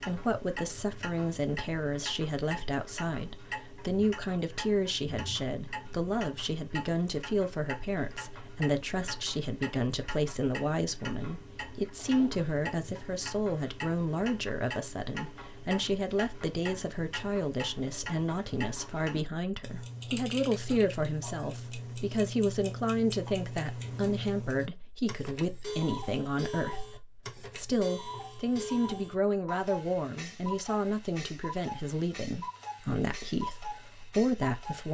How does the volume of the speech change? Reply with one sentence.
The loudness of the speech stays about the same.